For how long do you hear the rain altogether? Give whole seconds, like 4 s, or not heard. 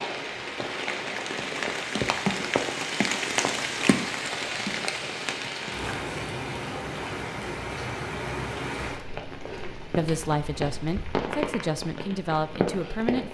13 s.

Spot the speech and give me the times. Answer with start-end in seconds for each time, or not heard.
9.9-13.3.